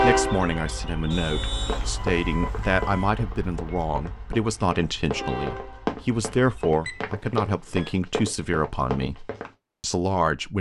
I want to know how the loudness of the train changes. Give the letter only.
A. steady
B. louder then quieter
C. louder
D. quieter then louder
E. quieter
D.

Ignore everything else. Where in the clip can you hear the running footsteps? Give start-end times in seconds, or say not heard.
1.6-9.5.